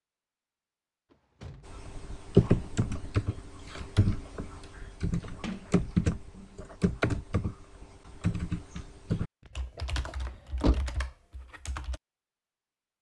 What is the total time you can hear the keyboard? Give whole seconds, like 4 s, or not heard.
10 s.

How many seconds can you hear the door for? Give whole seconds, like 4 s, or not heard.
4 s.